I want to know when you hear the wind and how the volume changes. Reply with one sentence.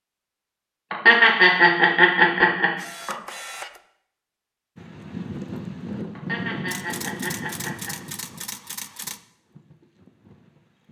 The wind can be heard from 4.8 to 10.8 s, getting quieter.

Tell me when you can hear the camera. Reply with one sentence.
You can hear the camera from 2.8 to 3.8 s and from 6.7 to 9.2 s.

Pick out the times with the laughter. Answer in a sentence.
You can hear the laughter from 0.9 to 3.1 s and from 6.2 to 8.0 s.